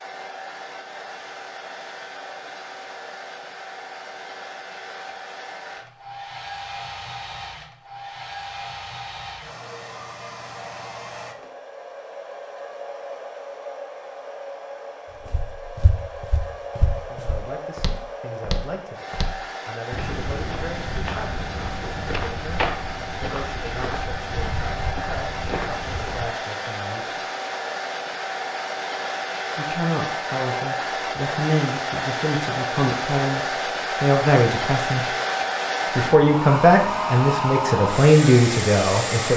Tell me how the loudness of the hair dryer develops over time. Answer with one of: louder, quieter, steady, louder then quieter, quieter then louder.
louder.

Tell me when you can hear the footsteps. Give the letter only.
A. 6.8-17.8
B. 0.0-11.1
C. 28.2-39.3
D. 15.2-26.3
D.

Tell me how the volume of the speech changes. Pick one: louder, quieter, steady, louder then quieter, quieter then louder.
louder.